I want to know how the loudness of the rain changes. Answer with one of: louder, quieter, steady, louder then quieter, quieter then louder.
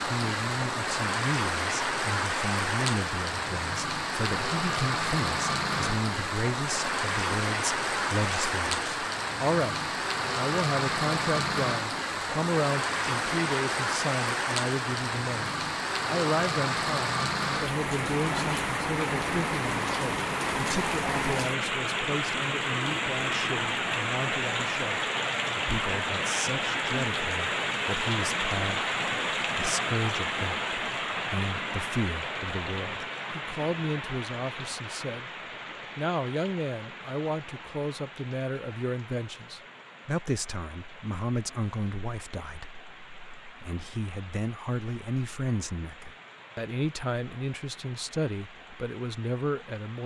quieter.